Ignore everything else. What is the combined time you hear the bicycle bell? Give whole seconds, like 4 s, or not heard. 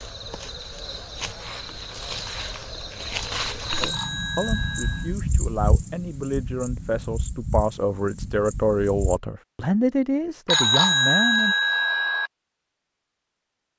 3 s.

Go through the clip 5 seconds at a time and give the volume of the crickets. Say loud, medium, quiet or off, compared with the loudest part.
loud, loud, off.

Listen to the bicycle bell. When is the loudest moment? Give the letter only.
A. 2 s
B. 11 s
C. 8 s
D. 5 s
B.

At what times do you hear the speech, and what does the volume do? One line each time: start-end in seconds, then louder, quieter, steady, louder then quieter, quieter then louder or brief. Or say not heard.
3.8-11.6 louder.